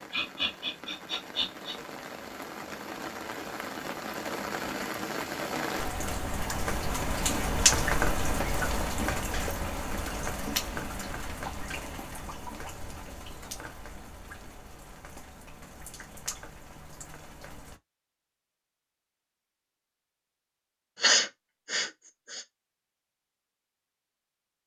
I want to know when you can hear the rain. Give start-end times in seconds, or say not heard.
0.0-17.8.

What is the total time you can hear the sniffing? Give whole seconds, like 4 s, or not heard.
3 s.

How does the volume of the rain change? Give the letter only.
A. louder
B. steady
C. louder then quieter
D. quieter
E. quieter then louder
C.